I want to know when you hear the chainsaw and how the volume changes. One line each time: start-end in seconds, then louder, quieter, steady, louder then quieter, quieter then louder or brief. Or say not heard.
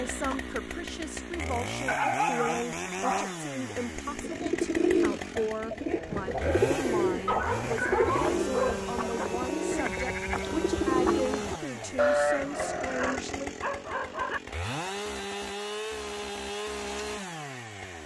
0.0-18.0 steady.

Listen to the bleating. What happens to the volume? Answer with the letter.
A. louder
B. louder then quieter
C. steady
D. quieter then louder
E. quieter
A.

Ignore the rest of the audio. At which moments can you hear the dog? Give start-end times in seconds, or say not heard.
1.9-3.4, 7.2-9.2, 12.8-14.4.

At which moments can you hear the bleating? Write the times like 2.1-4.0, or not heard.
5.8-13.2.